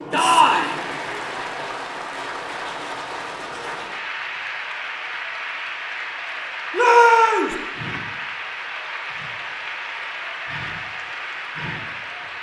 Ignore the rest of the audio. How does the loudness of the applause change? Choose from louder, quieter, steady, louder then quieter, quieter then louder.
steady.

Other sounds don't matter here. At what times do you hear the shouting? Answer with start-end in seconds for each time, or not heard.
0.1-0.8, 6.7-7.5.